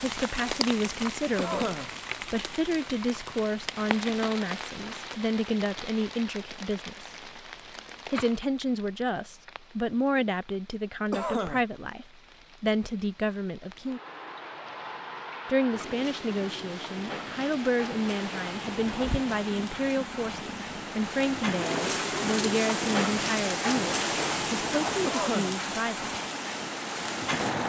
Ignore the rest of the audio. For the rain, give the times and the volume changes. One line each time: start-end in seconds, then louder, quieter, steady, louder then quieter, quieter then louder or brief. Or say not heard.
0.0-27.6 quieter then louder.